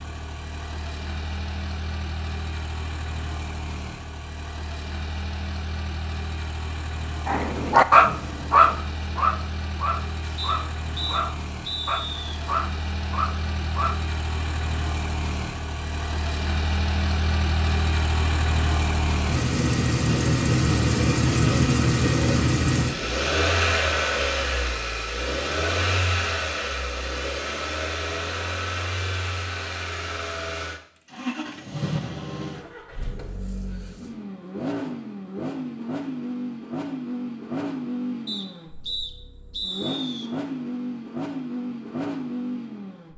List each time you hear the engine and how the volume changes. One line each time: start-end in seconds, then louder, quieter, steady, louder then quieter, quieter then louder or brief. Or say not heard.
0.0-43.1 louder then quieter.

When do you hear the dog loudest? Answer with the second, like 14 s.
8 s.